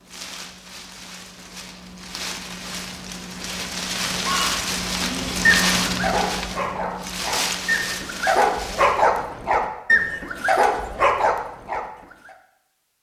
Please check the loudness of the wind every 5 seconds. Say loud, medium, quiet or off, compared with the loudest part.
loud, loud, off.